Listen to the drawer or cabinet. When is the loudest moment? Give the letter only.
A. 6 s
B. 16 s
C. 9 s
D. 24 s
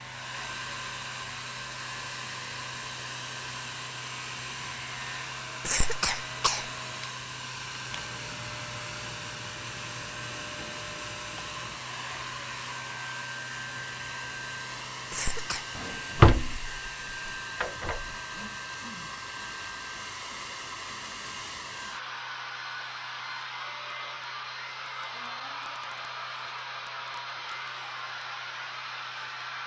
B.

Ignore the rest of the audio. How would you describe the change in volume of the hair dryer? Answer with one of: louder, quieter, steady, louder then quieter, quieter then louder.
steady.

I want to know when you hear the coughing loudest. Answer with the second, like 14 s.
6 s.